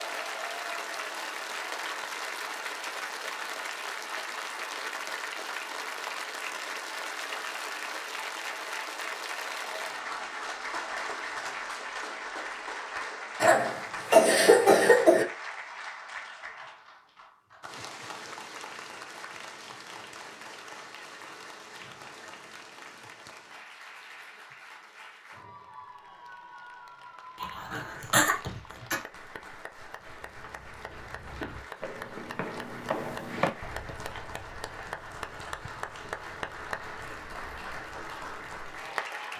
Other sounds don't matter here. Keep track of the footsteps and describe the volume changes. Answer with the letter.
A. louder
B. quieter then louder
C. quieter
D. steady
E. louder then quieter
E.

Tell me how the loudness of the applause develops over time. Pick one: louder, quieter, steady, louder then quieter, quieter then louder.
quieter then louder.